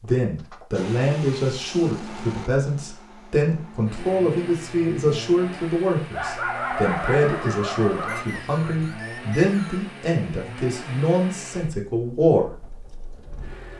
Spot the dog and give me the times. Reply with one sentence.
The dog can be heard from 6.1 to 8.2 s.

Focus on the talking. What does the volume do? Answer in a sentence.
The loudness of the talking stays about the same.